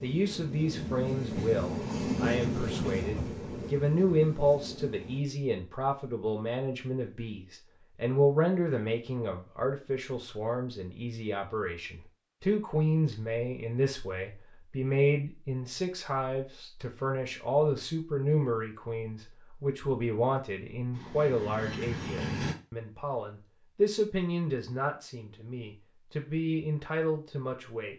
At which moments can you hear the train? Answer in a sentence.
The train can be heard from 0.0 to 5.2 s and from 20.9 to 22.6 s.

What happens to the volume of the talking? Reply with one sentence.
The loudness of the talking stays about the same.